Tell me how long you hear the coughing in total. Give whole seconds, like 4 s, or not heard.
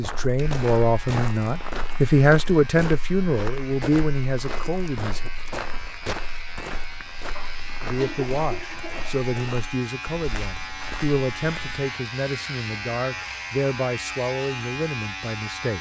2 s.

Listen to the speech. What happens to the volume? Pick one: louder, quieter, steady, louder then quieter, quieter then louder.
quieter.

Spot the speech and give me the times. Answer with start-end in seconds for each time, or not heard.
0.0-5.3, 7.8-15.7.